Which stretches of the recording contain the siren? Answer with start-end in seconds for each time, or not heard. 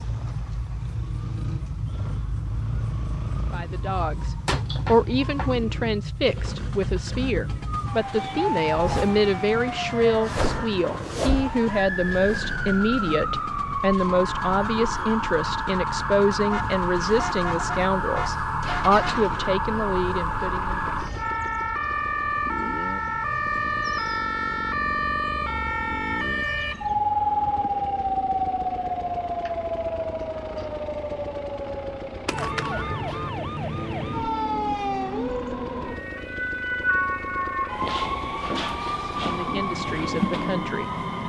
0.0-41.2.